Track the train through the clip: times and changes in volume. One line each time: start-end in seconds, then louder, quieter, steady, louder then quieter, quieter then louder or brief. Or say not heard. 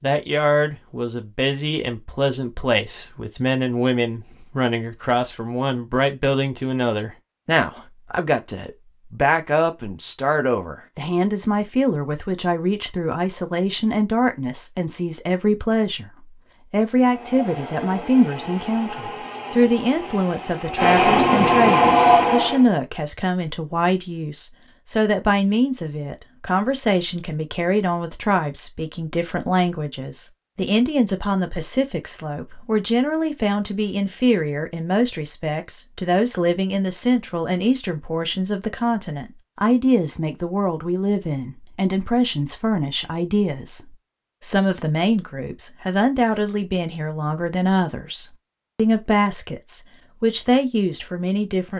16.9-22.6 louder.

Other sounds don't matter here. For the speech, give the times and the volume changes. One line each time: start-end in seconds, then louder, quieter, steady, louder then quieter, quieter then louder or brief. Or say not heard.
0.0-51.7 steady.